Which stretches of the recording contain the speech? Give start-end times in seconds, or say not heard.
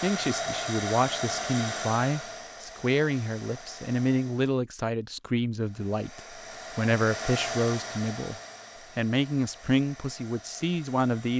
0.0-8.3, 8.9-11.3.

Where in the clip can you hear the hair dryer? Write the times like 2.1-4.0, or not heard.
0.0-4.6, 5.5-11.3.